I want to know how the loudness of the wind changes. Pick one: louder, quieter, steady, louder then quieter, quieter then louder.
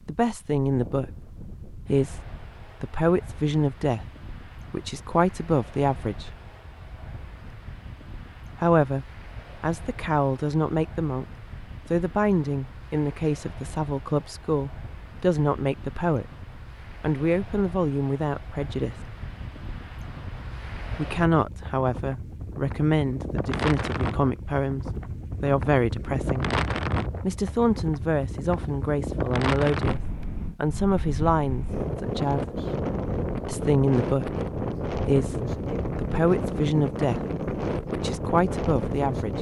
louder.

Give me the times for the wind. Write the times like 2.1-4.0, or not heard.
0.0-39.3.